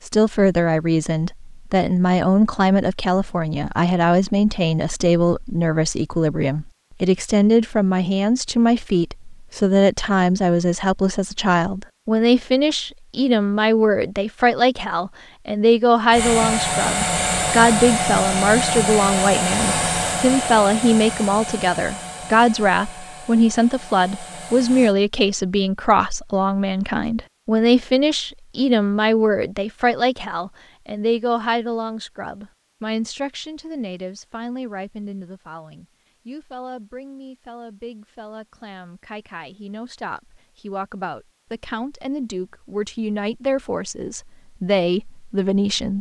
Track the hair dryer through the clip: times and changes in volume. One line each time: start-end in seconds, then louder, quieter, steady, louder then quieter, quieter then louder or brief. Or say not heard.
16.1-24.9 quieter.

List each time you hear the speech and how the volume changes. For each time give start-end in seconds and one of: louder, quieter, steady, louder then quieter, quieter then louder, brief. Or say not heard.
0.1-45.9 quieter.